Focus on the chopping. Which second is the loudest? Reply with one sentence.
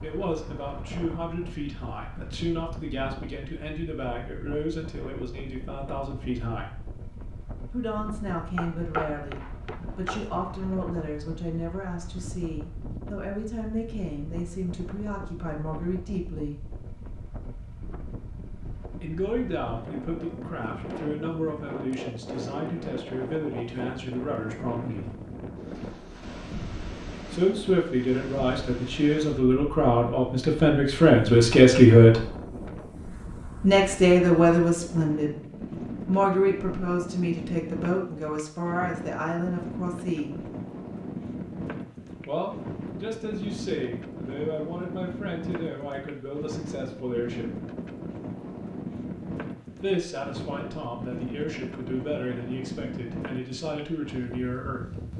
The loudest moment of the chopping is at 9 seconds.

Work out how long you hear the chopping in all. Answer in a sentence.
The chopping can be heard for 2 seconds in total.